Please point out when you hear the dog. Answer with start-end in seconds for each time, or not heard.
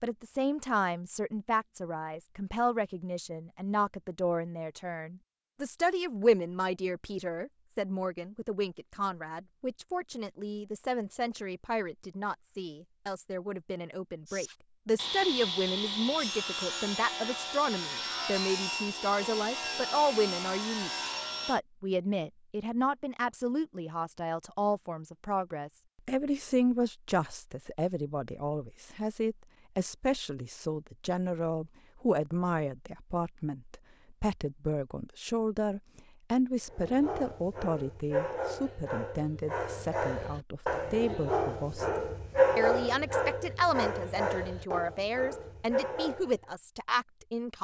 36.6-46.5.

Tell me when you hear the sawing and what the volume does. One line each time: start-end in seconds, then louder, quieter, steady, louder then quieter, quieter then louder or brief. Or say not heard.
14.2-21.6 steady.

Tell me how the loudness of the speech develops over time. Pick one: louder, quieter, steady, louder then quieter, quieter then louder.
steady.